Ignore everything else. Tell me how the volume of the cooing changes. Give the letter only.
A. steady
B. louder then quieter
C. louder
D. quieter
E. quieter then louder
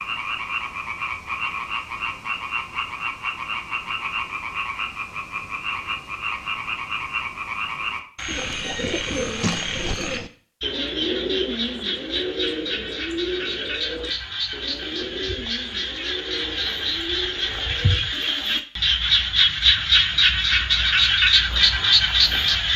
D.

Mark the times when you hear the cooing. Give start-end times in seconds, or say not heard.
8.2-18.6.